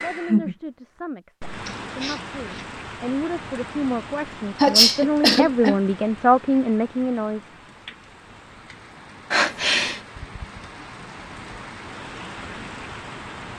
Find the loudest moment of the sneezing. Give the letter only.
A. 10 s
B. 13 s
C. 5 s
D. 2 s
C.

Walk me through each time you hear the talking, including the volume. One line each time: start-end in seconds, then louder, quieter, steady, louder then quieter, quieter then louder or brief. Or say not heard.
0.0-7.5 louder.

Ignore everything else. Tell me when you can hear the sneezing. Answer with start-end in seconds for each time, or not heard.
1.6-2.6, 4.5-5.8, 9.3-10.0.